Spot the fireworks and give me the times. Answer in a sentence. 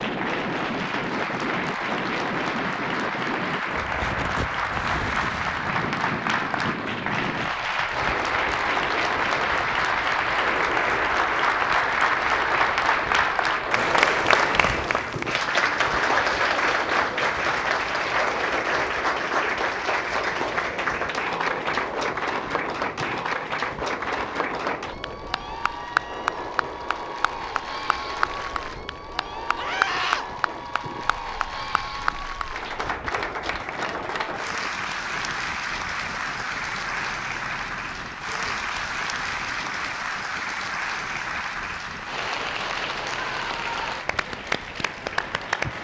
You can't hear the fireworks here.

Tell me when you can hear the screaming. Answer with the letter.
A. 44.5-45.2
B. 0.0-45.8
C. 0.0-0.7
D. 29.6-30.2
D.